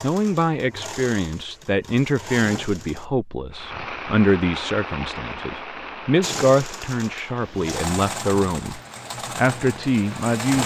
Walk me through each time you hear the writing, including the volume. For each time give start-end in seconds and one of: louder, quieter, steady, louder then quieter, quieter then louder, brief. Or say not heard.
not heard.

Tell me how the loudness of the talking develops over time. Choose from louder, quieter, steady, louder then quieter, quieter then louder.
steady.